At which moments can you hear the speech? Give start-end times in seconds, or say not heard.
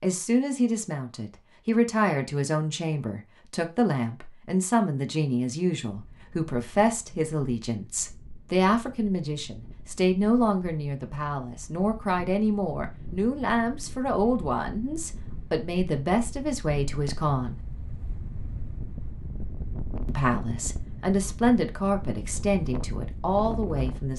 0.0-17.6, 20.1-24.1.